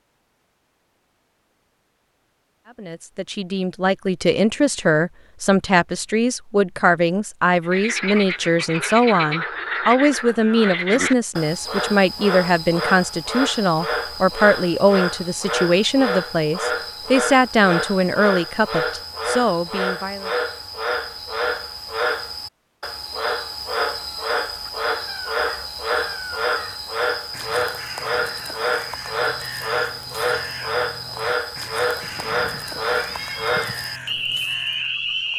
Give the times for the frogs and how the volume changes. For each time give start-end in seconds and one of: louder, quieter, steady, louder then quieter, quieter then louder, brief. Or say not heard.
7.6-35.3 steady.